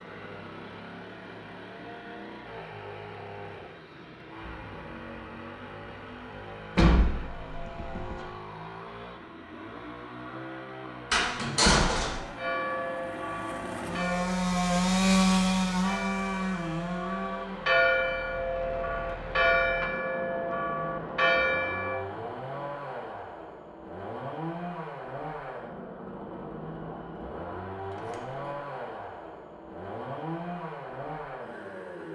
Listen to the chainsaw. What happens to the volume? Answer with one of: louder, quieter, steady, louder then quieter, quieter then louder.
louder then quieter.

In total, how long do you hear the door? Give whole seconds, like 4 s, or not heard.
3 s.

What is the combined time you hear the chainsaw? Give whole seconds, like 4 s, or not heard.
32 s.